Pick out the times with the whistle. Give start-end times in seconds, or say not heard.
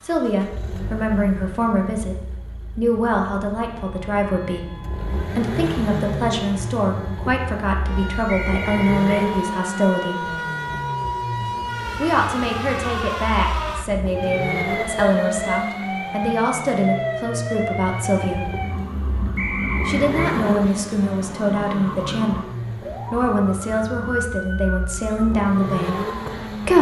8.2-9.3, 19.4-20.4.